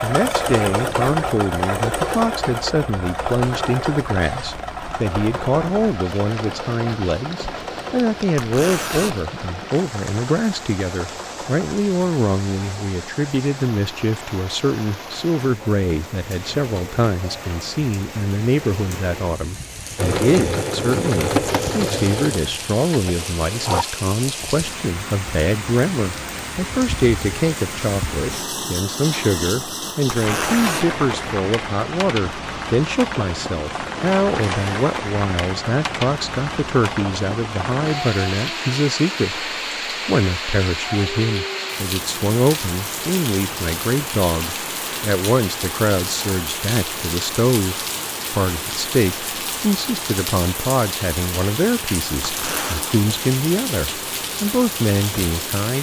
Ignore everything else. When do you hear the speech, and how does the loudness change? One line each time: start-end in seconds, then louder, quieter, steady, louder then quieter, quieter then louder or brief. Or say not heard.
0.0-55.7 steady.